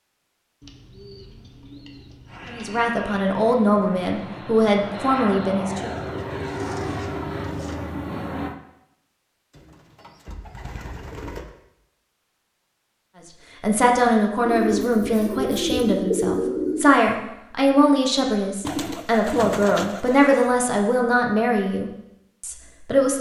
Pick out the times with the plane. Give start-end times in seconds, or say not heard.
2.2-8.6.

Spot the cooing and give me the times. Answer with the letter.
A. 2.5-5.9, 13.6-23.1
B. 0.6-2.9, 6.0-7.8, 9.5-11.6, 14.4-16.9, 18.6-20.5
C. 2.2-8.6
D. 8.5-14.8
B.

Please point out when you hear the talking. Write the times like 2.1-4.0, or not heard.
2.5-5.9, 13.6-23.1.